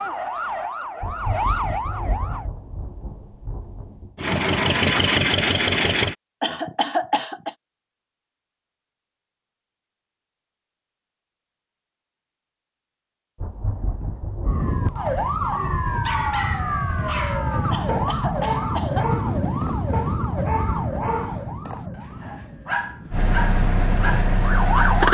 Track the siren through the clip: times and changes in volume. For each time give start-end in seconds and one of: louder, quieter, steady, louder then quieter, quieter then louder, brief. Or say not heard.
0.0-2.5 brief
14.4-25.0 quieter.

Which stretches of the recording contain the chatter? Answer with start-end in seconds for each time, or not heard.
not heard.